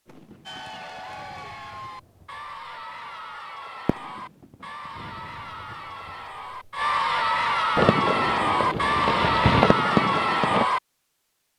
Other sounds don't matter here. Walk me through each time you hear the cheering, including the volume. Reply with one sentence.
You can hear the cheering from 0.5 to 10.8 s, getting louder.